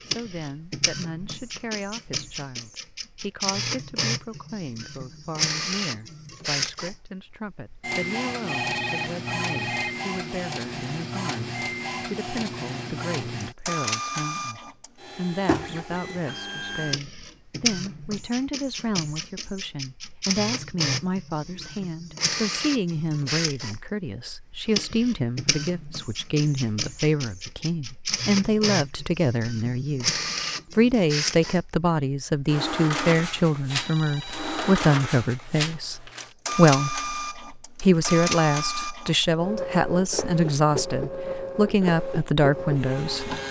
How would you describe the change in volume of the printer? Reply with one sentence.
The loudness of the printer stays about the same.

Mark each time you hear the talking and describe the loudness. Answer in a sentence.
You can hear the talking from 0.0 to 43.4 s, getting louder.